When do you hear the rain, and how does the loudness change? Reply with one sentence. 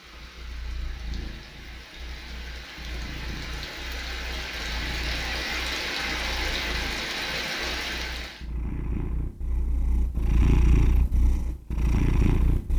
The rain can be heard from 0.0 to 8.4 s, getting louder.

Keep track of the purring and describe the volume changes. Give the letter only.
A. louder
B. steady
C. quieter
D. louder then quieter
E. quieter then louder
A.